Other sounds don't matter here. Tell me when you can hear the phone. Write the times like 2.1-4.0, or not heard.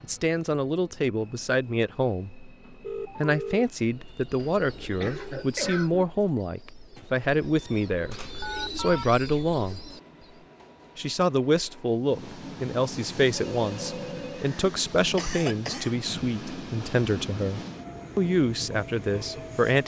2.8-3.6, 8.1-9.1, 13.6-14.4.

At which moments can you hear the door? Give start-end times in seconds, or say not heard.
not heard.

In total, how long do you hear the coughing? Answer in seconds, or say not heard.
3 s.